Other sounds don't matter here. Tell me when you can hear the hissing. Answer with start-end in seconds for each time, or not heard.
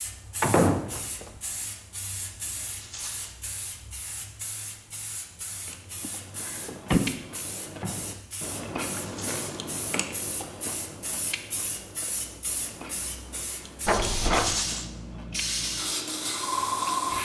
0.0-17.1.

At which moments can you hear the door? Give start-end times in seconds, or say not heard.
0.4-1.3, 6.0-7.2, 13.8-14.6.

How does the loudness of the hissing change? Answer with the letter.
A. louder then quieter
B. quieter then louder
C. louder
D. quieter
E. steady
C.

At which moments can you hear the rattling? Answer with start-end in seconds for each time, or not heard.
2.8-3.4, 9.0-9.4, 14.3-14.9.